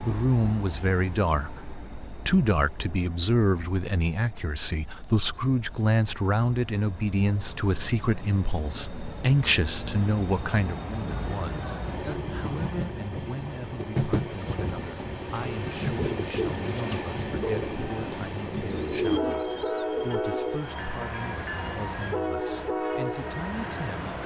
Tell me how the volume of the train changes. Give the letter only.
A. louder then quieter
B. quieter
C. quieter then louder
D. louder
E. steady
D.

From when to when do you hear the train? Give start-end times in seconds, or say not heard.
0.0-24.2.